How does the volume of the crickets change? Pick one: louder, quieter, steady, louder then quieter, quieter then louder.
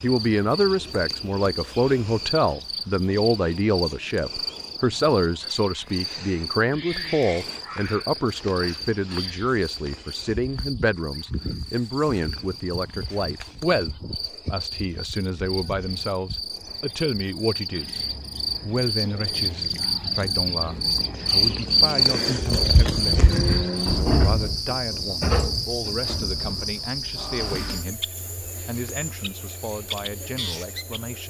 louder then quieter.